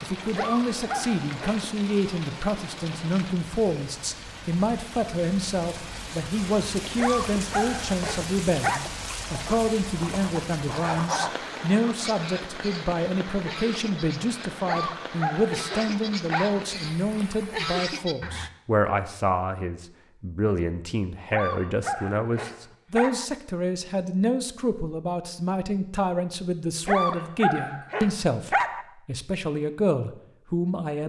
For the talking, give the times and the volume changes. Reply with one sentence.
You can hear the talking from 0.0 to 31.0 s, at a steady volume.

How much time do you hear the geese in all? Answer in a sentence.
The geese can be heard for 9 seconds in total.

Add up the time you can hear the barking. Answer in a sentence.
You can hear the barking for 9 seconds altogether.